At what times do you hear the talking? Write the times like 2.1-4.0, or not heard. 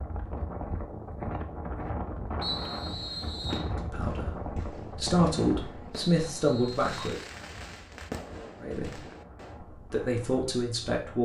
3.8-7.2, 8.6-9.0, 9.8-11.2.